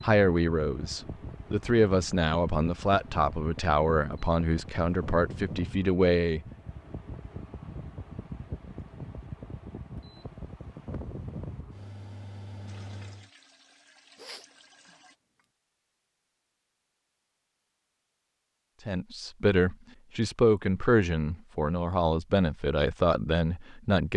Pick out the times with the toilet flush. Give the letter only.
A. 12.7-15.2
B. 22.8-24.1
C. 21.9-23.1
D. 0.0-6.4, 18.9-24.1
A.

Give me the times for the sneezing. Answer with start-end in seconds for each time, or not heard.
14.2-15.4.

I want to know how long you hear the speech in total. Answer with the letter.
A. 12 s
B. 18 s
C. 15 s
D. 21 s
A.